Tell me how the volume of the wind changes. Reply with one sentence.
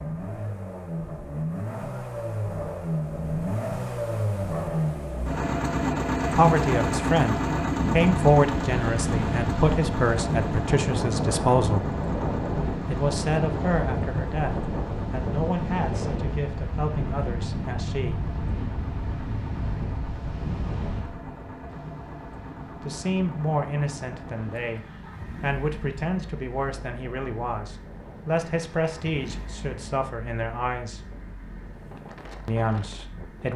The loudness of the wind goes down.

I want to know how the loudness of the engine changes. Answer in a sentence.
The volume of the engine goes down.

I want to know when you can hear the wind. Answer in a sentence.
The wind can be heard from 7.8 to 33.5 s.